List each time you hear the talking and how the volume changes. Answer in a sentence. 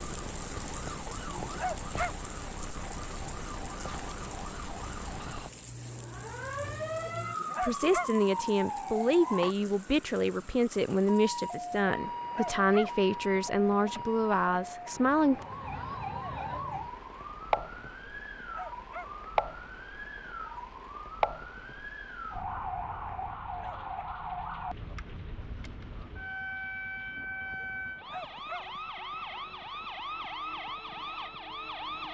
You can hear the talking from 7.6 to 15.3 s, at a steady volume.